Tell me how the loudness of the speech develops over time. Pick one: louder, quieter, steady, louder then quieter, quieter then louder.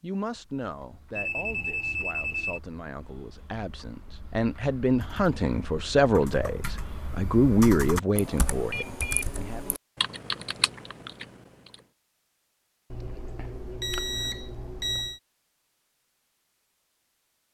louder.